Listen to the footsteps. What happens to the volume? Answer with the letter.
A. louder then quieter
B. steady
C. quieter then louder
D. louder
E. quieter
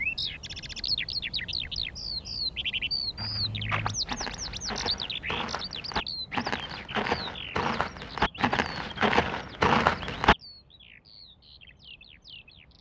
D.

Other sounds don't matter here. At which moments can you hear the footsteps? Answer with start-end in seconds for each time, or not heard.
3.1-10.3.